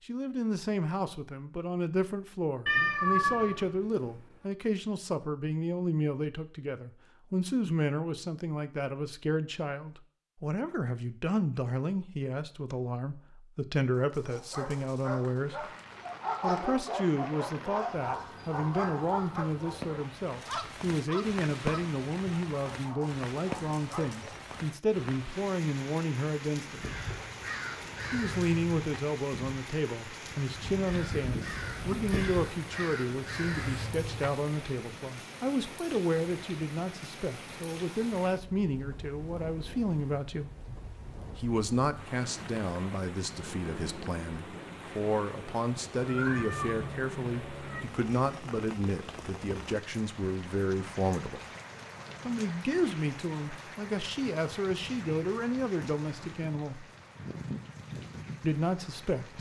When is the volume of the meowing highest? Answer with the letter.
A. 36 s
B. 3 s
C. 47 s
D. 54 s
B.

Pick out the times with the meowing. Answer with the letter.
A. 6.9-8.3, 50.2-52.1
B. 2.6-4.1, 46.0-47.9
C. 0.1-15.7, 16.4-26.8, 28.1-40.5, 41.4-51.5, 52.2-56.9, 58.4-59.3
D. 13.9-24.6
B.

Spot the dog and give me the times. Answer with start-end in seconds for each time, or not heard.
13.9-24.6.